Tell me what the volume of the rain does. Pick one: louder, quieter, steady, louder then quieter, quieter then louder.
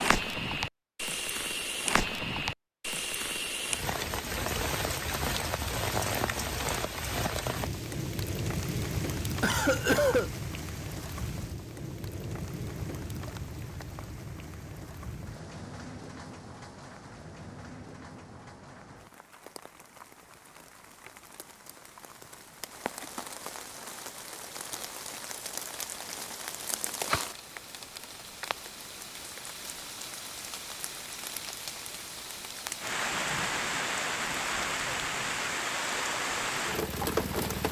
quieter then louder.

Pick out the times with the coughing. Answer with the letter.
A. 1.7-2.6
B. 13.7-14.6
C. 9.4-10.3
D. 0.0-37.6
C.